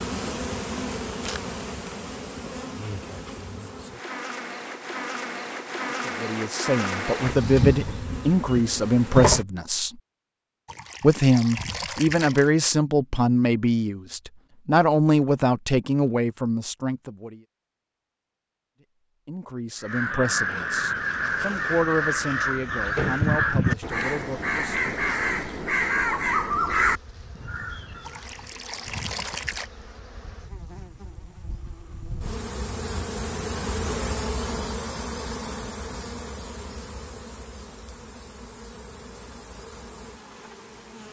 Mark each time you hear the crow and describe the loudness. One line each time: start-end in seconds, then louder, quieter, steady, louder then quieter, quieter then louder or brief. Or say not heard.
19.8-28.1 steady.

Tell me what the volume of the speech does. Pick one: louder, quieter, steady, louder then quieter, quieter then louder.
quieter.